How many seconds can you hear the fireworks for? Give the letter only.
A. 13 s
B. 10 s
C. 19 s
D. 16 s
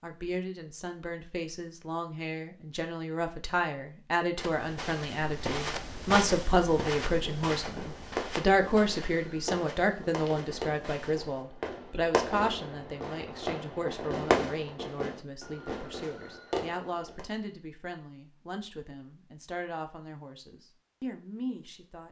B.